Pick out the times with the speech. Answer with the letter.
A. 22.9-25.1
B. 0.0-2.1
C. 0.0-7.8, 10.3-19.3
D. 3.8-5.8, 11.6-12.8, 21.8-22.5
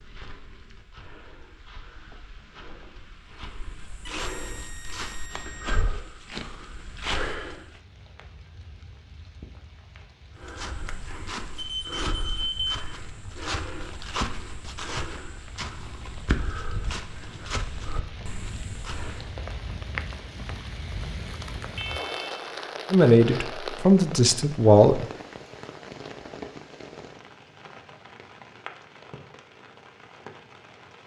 A.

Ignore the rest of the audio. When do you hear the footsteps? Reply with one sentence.
The footsteps can be heard from 0.0 to 7.8 s and from 10.3 to 19.3 s.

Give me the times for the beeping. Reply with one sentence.
You can hear the beeping from 3.8 to 5.8 s, from 11.6 to 12.8 s and from 21.8 to 22.5 s.